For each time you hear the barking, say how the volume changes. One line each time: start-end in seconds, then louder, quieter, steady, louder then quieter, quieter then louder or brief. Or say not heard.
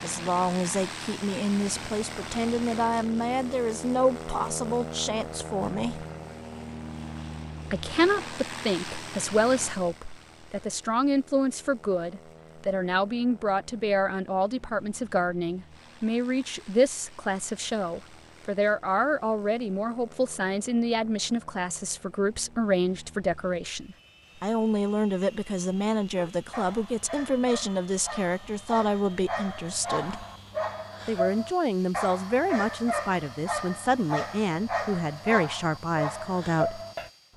25.9-37.1 louder.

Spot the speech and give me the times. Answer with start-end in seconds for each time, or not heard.
0.0-6.0, 7.7-30.2, 31.1-36.8.